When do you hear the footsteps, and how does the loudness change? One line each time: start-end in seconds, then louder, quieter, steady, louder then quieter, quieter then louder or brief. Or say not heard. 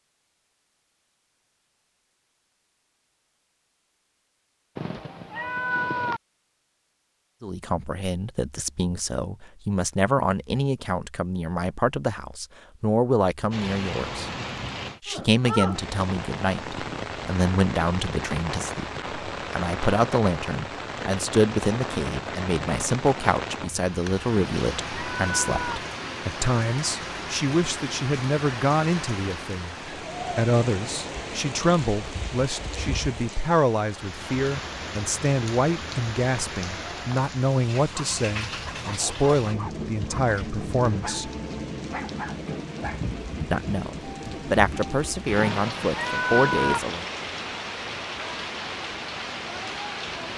not heard.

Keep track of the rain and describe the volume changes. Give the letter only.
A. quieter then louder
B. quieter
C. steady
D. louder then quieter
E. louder
C.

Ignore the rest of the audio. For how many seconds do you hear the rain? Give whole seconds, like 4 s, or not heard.
37 s.